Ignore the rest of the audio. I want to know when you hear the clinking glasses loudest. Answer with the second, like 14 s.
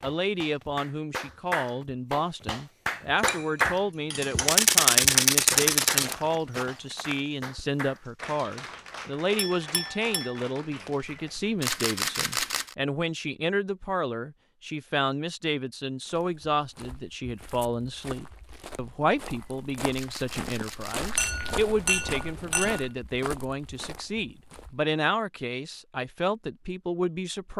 22 s.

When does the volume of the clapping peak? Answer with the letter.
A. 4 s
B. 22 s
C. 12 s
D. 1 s
A.